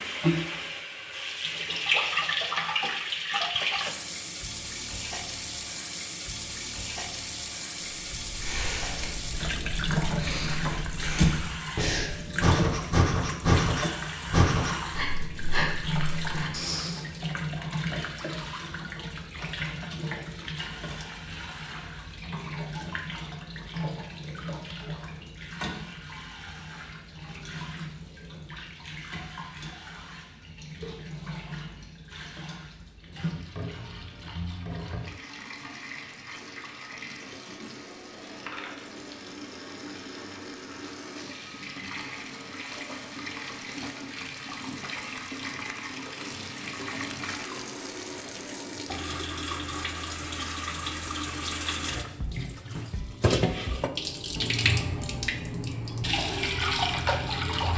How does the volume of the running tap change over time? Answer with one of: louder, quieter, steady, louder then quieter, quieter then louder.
quieter then louder.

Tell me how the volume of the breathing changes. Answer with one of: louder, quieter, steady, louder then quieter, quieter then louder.
louder then quieter.